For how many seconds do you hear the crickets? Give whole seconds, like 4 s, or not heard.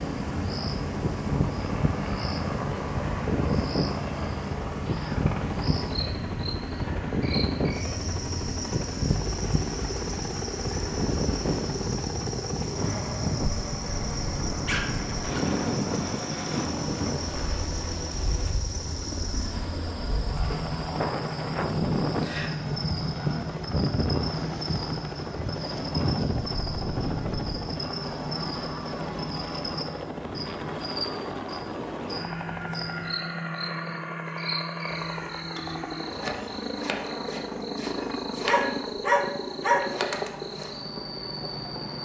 42 s.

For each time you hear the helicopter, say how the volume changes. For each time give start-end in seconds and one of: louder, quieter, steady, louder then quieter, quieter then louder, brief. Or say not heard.
0.0-42.0 steady.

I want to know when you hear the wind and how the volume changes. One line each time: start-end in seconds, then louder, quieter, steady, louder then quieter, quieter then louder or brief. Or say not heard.
0.0-27.8 steady.